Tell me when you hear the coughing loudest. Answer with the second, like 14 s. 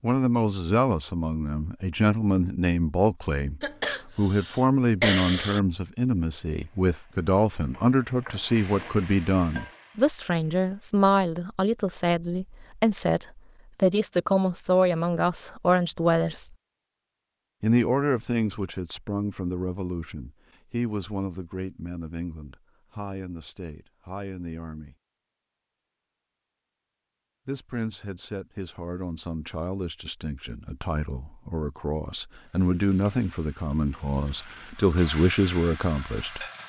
5 s.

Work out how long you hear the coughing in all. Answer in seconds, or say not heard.
2 s.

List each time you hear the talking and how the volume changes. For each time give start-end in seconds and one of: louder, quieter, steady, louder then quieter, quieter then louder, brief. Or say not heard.
0.0-16.5 steady
17.6-24.9 quieter
27.4-36.4 louder.